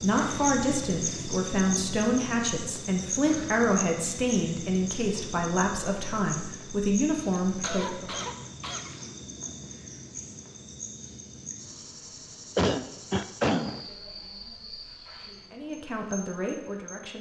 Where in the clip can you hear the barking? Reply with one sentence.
You can't hear the barking here.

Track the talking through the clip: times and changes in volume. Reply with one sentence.
You can hear the talking from 0.0 to 8.2 s, at a steady volume; and briefly from 15.5 to 17.1 s.